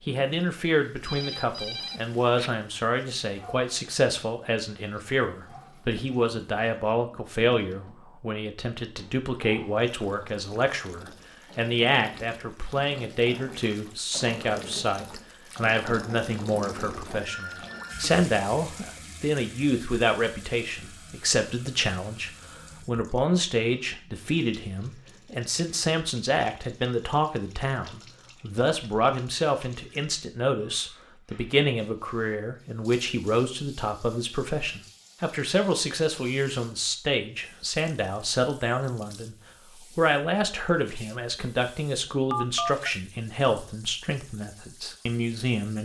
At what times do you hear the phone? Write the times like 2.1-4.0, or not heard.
1.0-2.5, 17.2-18.1, 42.3-42.9.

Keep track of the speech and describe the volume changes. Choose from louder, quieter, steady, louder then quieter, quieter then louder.
steady.